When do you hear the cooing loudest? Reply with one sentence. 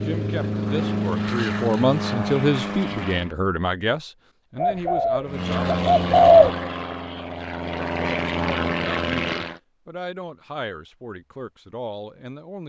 The loudest moment of the cooing is at 6 seconds.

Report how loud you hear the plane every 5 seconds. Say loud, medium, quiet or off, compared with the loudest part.
loud, loud, off.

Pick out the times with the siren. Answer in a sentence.
You can't hear the siren here.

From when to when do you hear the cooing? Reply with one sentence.
You can hear the cooing from 4.5 to 6.5 s.